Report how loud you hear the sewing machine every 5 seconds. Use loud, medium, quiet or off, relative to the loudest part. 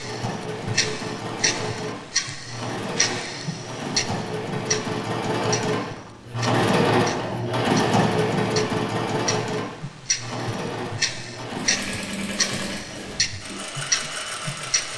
medium, loud, medium.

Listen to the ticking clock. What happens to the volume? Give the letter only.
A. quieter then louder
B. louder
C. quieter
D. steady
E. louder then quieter
A.